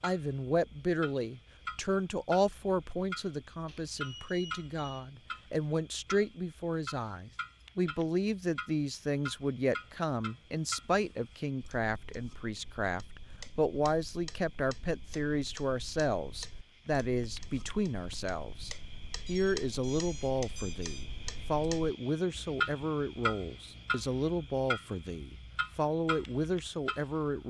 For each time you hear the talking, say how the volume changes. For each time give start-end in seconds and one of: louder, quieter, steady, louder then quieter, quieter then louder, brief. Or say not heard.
0.0-27.4 steady.